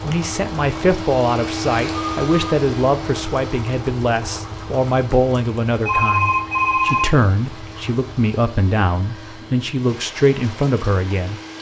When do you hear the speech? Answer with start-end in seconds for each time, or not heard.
0.0-11.4.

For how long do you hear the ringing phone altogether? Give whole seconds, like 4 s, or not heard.
2 s.